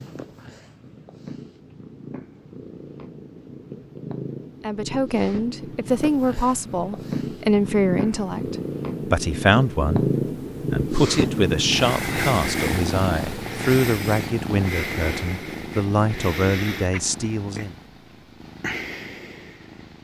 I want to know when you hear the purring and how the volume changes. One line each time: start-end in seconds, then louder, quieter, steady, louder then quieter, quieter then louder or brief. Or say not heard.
0.0-19.9 louder then quieter.